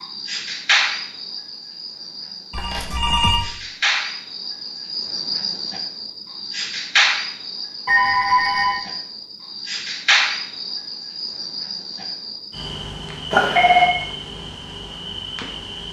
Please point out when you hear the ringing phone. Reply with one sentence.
You can hear the ringing phone from 2.5 to 3.5 s, from 7.8 to 8.8 s and from 13.3 to 13.9 s.